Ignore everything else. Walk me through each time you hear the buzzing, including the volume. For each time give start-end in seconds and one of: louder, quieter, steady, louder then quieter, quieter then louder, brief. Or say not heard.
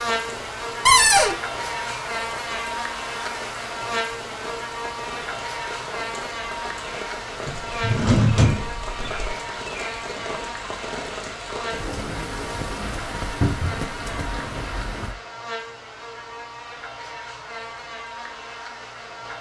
0.0-19.3 quieter.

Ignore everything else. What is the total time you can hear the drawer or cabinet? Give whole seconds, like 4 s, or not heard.
3 s.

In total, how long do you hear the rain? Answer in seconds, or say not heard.
15 s.